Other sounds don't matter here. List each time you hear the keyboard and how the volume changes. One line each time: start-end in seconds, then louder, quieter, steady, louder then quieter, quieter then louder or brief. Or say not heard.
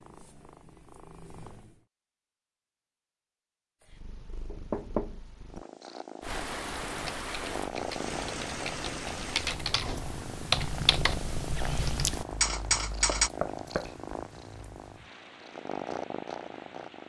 6.7-13.3 louder.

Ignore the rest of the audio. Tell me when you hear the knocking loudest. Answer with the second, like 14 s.
5 s.